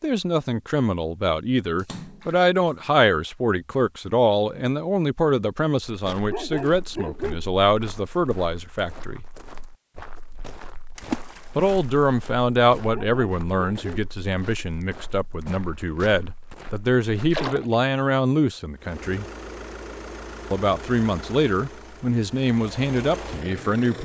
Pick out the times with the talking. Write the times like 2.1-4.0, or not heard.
0.0-9.2, 11.6-19.2, 20.5-23.9.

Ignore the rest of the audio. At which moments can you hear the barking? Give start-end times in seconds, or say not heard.
6.3-7.5, 12.9-14.1.